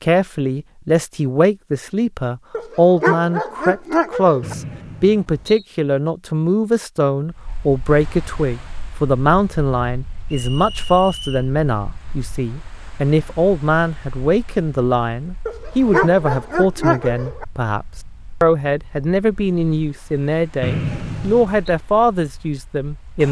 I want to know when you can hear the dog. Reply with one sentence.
The dog can be heard from 2.5 to 4.5 s and from 15.4 to 17.4 s.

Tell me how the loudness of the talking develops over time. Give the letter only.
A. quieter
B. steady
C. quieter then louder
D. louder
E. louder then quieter
B.